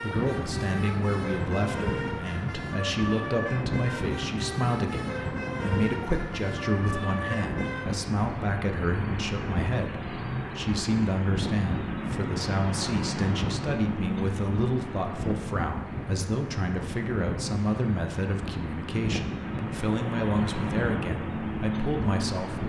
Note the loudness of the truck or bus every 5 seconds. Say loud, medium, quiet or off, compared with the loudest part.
loud, loud, loud, medium, loud.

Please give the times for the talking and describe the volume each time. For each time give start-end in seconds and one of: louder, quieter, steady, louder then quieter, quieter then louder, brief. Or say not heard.
0.0-22.6 steady.